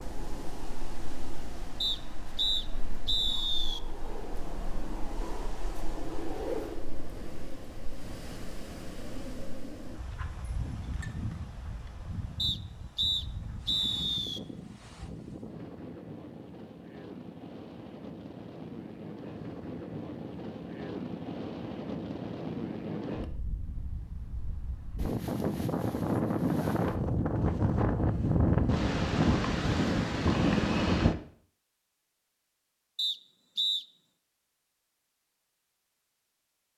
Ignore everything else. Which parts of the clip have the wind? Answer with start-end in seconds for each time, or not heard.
0.0-31.1.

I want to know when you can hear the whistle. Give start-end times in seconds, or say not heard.
1.8-3.8, 12.3-14.4, 33.0-33.9.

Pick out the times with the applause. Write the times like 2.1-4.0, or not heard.
not heard.